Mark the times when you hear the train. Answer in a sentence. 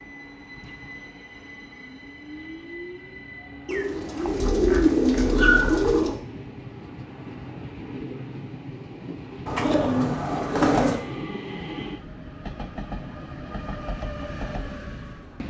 The train can be heard from 0.0 to 15.4 s.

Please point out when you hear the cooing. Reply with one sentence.
The cooing can be heard from 3.6 to 6.2 s and from 9.4 to 11.0 s.